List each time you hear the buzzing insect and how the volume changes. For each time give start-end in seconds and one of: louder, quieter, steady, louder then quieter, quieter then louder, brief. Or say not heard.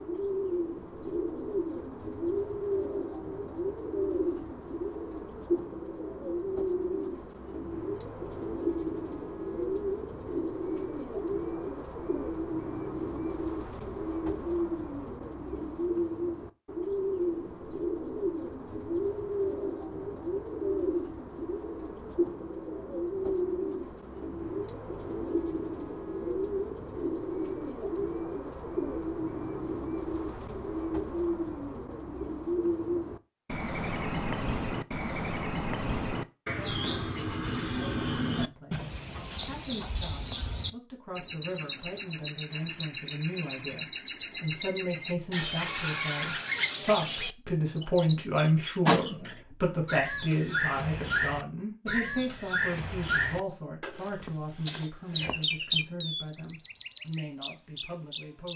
not heard.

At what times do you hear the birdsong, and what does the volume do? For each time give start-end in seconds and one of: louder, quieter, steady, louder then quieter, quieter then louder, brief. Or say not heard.
0.0-58.5 steady.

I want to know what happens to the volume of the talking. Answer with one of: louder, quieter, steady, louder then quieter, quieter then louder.
louder then quieter.